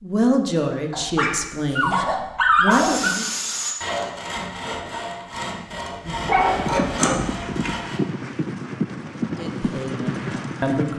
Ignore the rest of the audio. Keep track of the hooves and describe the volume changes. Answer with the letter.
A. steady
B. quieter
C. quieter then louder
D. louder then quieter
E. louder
A.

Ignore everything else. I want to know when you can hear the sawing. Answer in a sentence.
You can hear the sawing from 2.7 to 8.0 s.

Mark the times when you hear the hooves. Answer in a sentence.
The hooves can be heard from 6.5 to 10.9 s.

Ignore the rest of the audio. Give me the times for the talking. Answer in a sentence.
The talking can be heard from 0.0 to 3.2 s and from 9.2 to 10.9 s.